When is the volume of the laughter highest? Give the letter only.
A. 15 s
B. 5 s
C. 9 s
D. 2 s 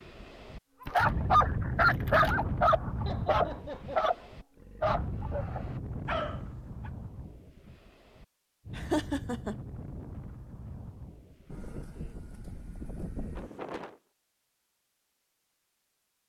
C.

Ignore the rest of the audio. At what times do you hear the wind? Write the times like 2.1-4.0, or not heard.
0.0-14.0.